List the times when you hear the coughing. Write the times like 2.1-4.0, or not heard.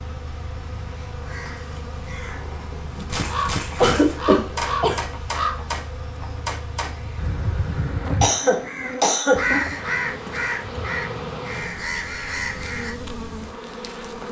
3.8-5.0, 8.2-9.4.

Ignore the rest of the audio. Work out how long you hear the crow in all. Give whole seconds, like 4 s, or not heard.
12 s.